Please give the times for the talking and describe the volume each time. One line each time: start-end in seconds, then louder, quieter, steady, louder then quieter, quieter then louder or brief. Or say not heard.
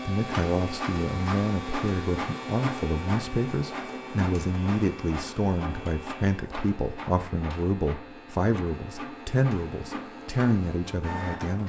0.1-11.6 steady.